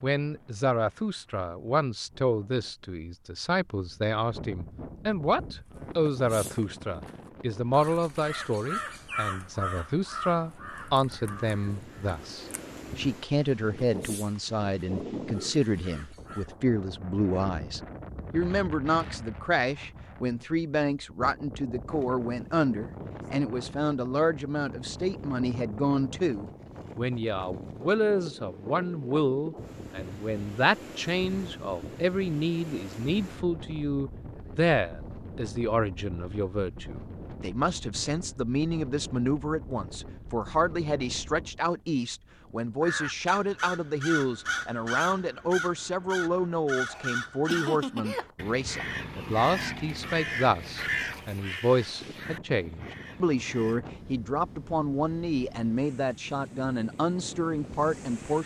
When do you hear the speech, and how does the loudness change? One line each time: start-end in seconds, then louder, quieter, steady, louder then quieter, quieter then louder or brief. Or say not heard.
0.0-58.4 steady.